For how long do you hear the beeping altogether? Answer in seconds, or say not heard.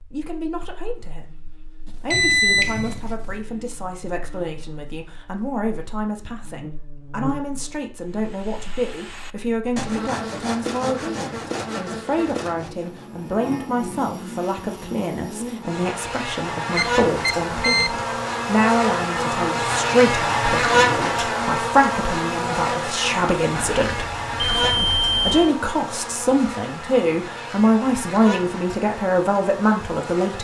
4 s.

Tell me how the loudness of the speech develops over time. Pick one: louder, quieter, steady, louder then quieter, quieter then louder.
louder.